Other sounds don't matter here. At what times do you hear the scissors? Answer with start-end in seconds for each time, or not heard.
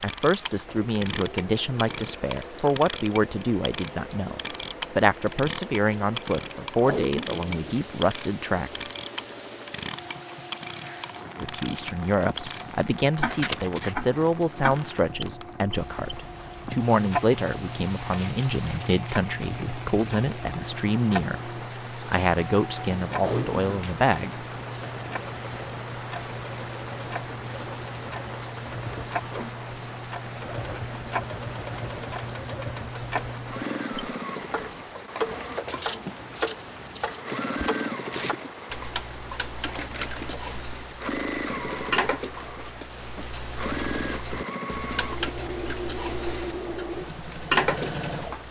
13.2-13.9, 18.1-19.1, 35.3-37.2.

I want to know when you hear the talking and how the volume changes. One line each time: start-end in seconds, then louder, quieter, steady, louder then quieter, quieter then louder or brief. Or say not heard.
0.0-8.8 steady
11.3-24.4 steady.